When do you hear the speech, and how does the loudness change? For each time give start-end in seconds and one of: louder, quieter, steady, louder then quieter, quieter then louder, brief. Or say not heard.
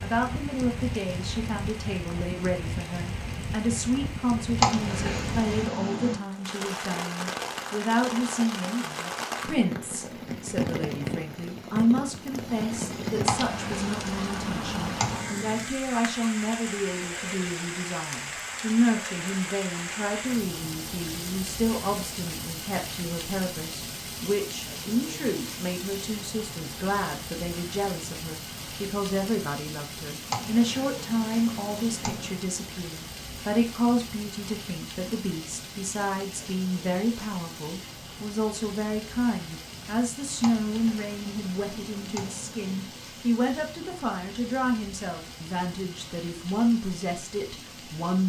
0.0-48.2 steady.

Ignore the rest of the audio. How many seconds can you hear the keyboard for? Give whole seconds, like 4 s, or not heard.
9 s.